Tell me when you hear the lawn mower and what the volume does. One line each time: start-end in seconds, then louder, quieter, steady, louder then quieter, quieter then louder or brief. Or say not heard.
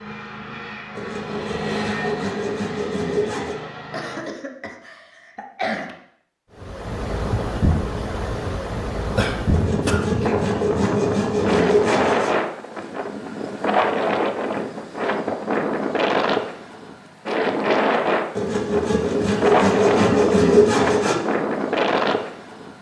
0.0-4.2 louder then quieter.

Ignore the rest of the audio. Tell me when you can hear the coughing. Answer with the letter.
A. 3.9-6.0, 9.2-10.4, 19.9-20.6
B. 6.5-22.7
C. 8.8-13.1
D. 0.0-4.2
A.